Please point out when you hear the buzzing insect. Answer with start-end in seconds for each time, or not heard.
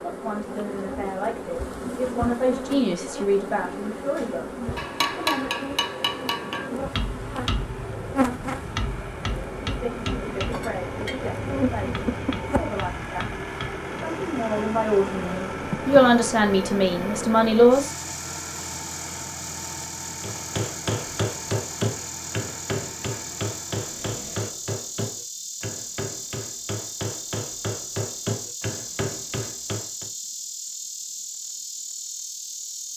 0.0-32.9.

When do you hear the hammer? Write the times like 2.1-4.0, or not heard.
4.2-13.8, 20.2-30.1.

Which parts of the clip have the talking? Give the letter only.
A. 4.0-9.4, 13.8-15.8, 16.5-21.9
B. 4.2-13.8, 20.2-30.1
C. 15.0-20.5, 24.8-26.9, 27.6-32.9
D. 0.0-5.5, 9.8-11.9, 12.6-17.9
D.